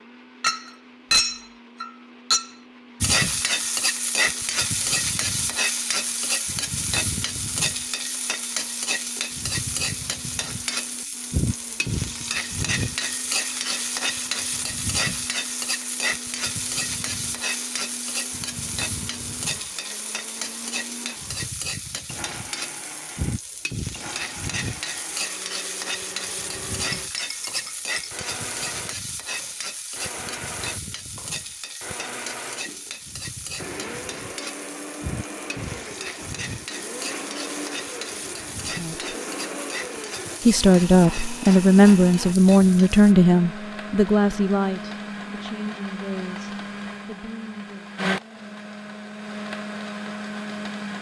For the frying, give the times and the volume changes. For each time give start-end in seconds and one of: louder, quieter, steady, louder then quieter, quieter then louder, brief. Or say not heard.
3.0-43.1 quieter.